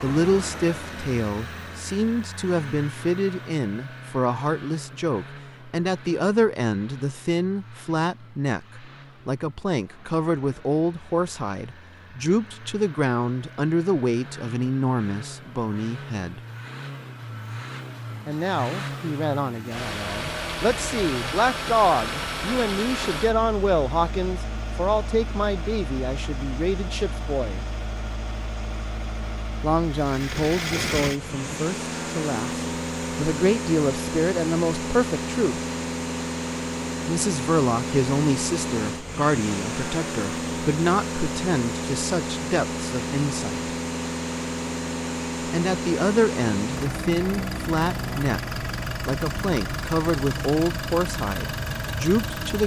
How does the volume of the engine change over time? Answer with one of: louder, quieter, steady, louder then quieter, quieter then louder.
louder.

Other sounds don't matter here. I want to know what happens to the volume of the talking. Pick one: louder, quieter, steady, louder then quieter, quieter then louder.
steady.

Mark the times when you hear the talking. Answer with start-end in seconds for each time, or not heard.
0.0-16.4, 18.2-27.6, 29.6-35.6, 37.0-43.8, 45.5-52.6.